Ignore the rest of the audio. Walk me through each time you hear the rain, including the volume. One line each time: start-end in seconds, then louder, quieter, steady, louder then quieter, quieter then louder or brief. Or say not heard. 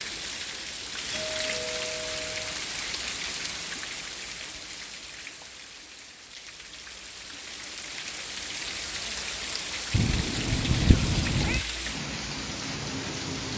0.0-13.5 quieter then louder.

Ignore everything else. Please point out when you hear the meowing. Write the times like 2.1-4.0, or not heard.
9.9-11.7.